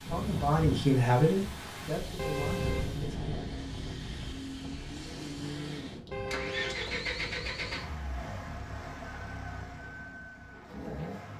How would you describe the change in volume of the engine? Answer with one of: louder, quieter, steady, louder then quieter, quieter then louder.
louder then quieter.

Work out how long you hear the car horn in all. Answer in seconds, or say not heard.
4 s.